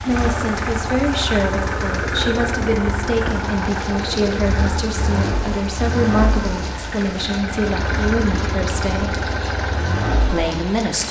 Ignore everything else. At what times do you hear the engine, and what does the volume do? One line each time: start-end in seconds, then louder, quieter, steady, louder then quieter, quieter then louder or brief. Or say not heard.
0.0-11.0 steady.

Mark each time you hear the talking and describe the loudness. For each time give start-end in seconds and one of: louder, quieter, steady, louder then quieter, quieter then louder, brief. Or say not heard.
0.0-9.2 steady
10.2-11.0 brief.